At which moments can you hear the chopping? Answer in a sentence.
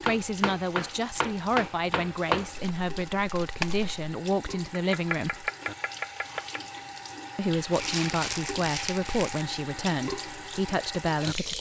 You can hear the chopping from 0.0 to 2.7 s and from 4.7 to 6.6 s.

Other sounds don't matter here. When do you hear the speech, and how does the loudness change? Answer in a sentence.
The speech can be heard from 0.0 to 5.5 s, at a steady volume; and from 7.3 to 11.5 s, at a steady volume.